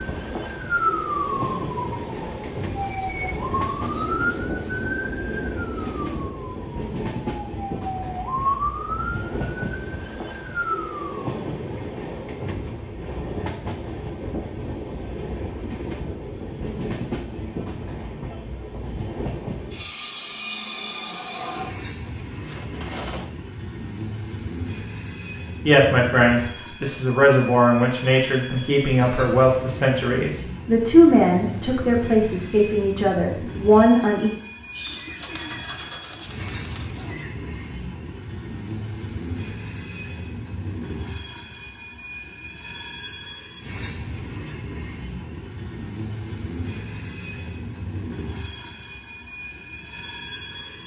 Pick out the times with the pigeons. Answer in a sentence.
The pigeons can be heard from 3.4 to 6.3 s, from 21.4 to 23.3 s and from 34.8 to 37.3 s.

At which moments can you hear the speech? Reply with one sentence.
You can hear the speech from 25.6 to 34.3 s.